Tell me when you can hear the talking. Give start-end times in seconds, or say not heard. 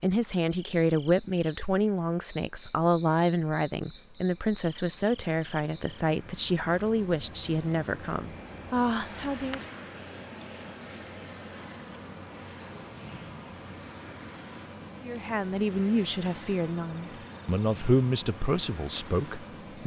0.0-9.7, 15.0-19.8.